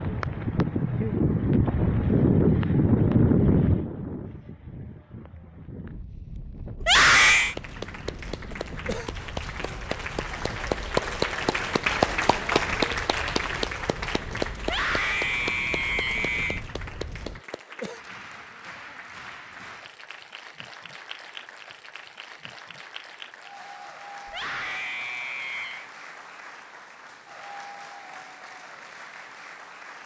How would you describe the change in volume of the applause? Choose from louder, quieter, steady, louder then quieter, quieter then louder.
quieter.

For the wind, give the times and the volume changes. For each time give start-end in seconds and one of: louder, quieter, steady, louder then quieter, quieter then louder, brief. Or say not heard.
0.0-17.4 quieter.